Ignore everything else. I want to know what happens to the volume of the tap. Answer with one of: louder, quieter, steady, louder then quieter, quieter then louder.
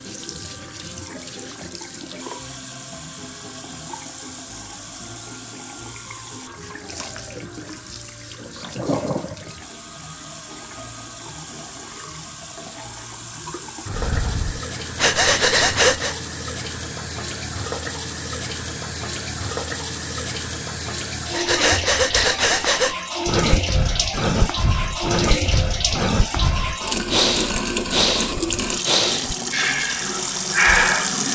louder.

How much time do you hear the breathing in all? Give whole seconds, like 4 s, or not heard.
12 s.